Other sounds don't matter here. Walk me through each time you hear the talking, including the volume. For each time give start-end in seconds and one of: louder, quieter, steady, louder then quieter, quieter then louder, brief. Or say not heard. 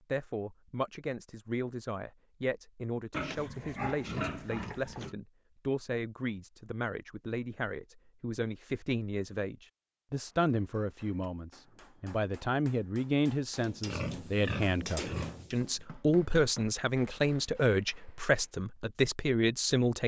0.1-20.0 louder.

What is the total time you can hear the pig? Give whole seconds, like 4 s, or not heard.
4 s.